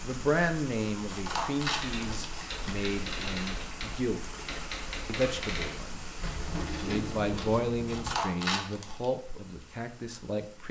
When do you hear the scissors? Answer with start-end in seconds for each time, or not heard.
1.1-2.4, 7.8-9.1.